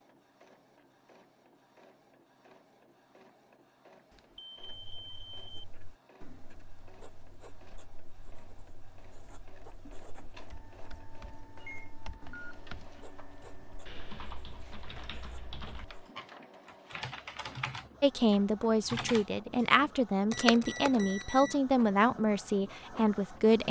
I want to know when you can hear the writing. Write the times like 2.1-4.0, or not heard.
4.6-16.1.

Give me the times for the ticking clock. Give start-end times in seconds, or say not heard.
not heard.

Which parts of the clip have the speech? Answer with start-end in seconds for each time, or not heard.
18.0-23.6.